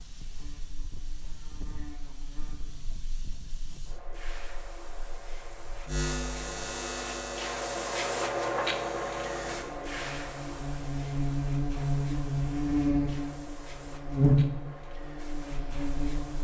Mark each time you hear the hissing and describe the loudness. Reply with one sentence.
The hissing can be heard from 0.0 to 16.3 s, getting louder then quieter.